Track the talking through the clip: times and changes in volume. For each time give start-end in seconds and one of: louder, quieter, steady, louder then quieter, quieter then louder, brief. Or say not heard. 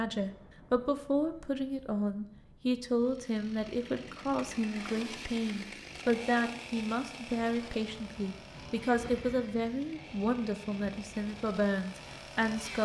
0.0-12.8 steady.